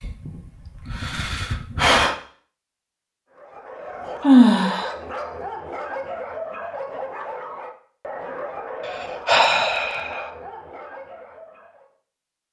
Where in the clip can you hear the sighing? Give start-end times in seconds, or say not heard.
0.0-2.1, 4.2-4.9, 8.8-10.3.